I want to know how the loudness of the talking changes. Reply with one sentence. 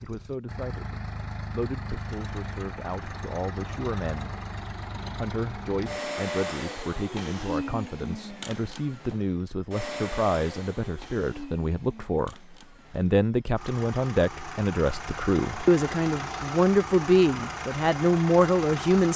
The loudness of the talking goes up.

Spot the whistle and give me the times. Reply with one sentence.
You can't hear the whistle here.